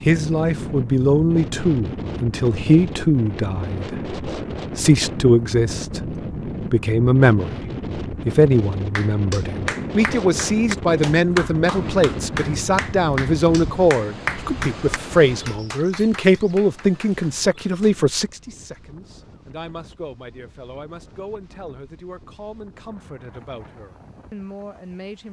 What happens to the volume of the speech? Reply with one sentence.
The loudness of the speech goes down.